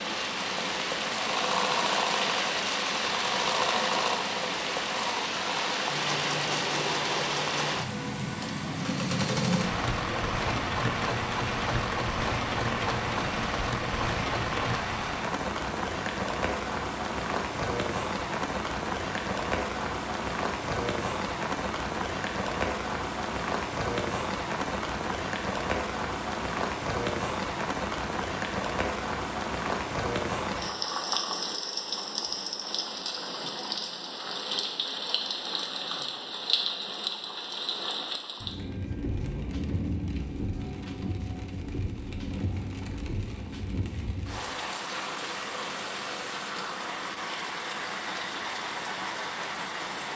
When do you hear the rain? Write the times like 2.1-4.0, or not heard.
0.0-50.1.